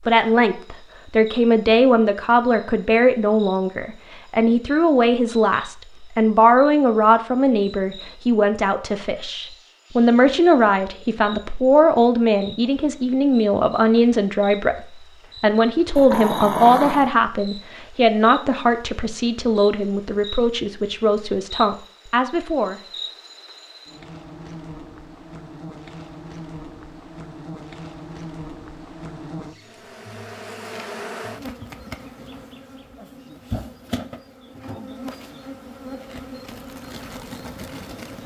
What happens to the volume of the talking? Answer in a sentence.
The loudness of the talking stays about the same.